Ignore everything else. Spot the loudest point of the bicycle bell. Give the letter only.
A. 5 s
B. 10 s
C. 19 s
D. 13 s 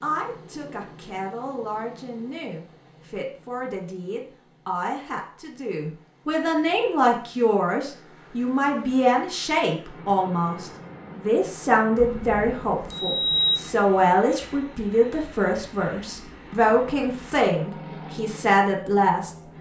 D.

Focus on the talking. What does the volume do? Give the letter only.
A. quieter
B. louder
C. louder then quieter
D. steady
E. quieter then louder
B.